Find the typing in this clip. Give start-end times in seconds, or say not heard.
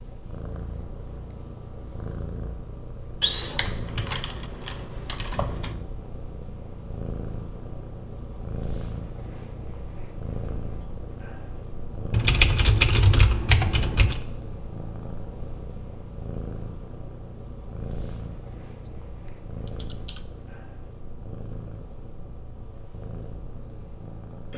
3.2-5.8, 12.1-14.2, 19.6-20.2.